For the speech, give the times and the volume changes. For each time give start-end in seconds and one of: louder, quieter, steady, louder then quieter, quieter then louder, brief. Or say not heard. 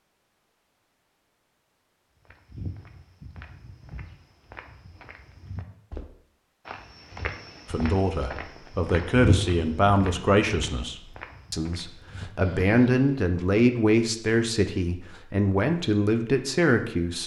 7.7-17.2 steady.